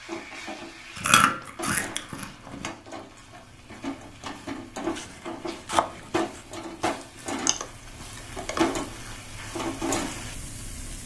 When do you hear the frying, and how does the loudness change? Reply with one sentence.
You can hear the frying from 0.0 to 11.0 s, getting louder.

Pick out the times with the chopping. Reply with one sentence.
The chopping can be heard from 5.0 to 6.5 s.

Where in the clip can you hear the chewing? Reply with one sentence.
You can hear the chewing from 0.9 to 2.7 s and from 7.3 to 8.7 s.